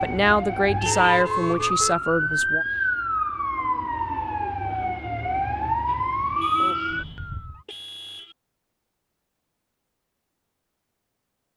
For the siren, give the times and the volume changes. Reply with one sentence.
The siren can be heard from 0.0 to 7.6 s, at a steady volume.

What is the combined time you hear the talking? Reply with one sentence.
You can hear the talking for 3 seconds altogether.